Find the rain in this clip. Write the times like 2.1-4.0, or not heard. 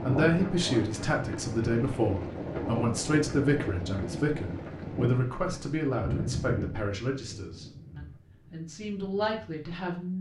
0.0-10.1.